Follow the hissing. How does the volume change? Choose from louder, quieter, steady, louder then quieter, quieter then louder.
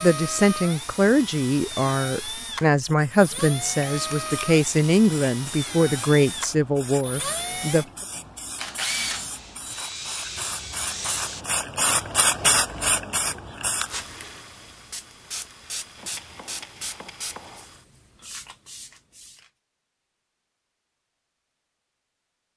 louder then quieter.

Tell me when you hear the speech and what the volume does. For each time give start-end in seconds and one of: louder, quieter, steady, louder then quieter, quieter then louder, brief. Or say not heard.
0.0-7.8 steady.